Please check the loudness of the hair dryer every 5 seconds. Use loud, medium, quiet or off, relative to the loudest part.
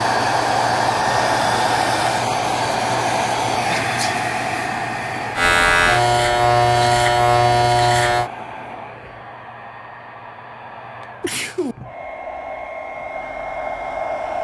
loud, medium, medium.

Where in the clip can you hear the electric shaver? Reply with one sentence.
You can hear the electric shaver from 5.3 to 8.3 s.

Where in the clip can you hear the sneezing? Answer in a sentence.
The sneezing can be heard from 3.6 to 4.2 s and from 11.2 to 11.8 s.